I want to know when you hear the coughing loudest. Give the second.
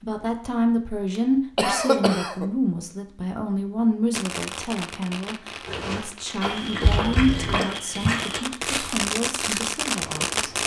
2 s.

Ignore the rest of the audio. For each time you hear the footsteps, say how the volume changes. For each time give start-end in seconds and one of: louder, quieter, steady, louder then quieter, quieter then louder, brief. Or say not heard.
5.7-10.6 quieter.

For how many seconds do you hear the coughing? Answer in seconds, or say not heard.
2 s.